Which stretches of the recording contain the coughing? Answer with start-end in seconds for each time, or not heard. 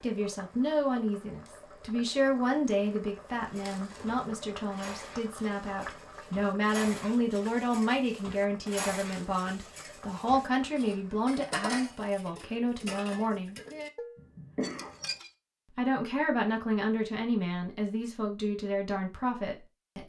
14.2-15.2.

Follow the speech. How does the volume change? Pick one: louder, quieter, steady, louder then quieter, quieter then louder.
steady.